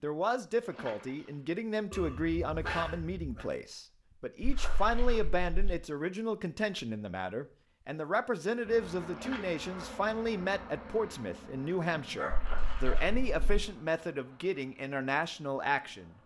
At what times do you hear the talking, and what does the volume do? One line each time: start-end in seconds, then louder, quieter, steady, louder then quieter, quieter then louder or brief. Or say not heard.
0.0-16.1 steady.